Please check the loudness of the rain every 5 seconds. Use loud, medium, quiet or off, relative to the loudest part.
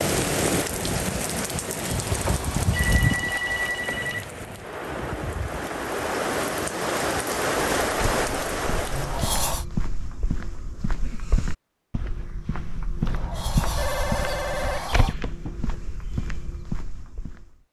loud, loud, off, off.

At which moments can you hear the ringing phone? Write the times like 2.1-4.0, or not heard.
2.2-4.2, 13.8-15.6.